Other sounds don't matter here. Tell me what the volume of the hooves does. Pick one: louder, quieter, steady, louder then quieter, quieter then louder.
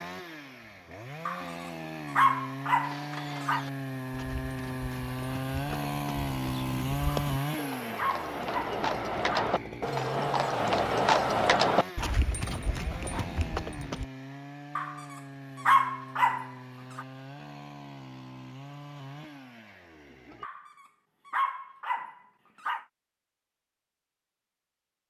louder then quieter.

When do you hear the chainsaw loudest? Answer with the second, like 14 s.
7 s.